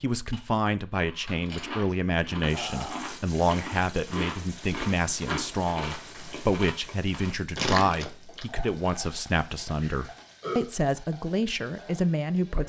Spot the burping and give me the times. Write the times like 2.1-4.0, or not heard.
2.5-3.0, 9.8-10.7.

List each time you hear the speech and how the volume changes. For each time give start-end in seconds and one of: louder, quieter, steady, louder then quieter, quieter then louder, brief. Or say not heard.
0.0-12.6 steady.